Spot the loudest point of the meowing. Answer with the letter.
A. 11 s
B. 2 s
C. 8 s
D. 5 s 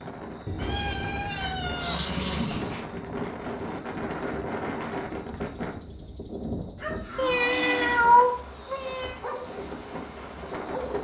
C.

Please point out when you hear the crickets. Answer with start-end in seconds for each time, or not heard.
0.0-10.9.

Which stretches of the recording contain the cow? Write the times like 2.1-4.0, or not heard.
0.5-2.5, 6.8-8.1.